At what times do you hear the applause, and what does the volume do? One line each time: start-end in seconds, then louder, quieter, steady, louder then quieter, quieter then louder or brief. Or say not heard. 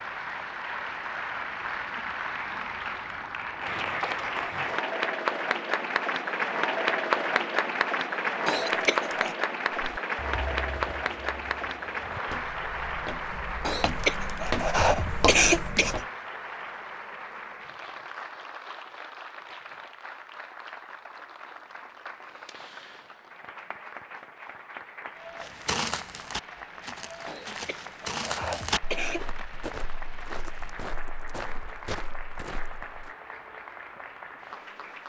0.0-35.0 quieter.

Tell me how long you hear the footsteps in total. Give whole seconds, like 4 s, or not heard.
14 s.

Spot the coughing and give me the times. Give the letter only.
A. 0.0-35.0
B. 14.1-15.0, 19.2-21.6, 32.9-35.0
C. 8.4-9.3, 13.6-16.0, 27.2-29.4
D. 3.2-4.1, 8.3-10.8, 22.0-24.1
C.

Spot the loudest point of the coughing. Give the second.
15 s.